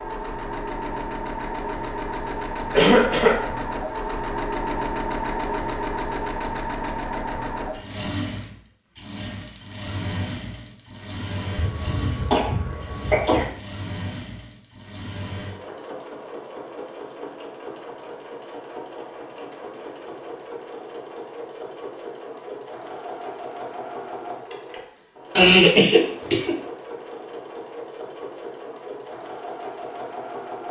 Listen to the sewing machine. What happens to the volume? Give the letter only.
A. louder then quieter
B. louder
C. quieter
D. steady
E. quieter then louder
C.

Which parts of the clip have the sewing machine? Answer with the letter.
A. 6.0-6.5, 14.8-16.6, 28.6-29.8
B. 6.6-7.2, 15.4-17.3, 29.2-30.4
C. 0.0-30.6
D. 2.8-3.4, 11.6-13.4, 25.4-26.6
C.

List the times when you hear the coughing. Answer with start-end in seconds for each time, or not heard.
2.8-3.4, 11.6-13.4, 25.4-26.6.